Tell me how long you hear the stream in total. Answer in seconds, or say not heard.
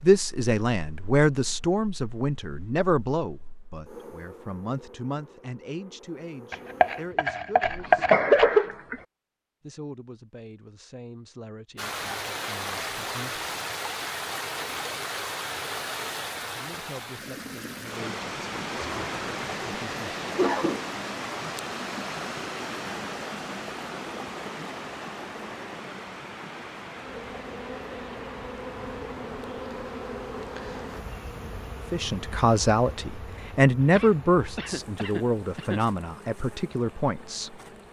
26 s.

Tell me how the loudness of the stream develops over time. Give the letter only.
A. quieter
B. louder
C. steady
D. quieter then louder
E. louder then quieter
A.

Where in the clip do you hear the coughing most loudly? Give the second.
8 s.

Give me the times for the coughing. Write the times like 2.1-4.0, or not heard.
7.7-9.0, 18.8-20.8, 33.9-35.8.